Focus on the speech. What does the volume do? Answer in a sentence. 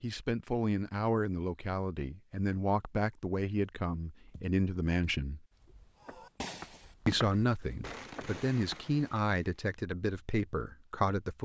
The volume of the speech stays about the same.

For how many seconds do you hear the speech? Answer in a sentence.
The speech can be heard for 10 seconds in total.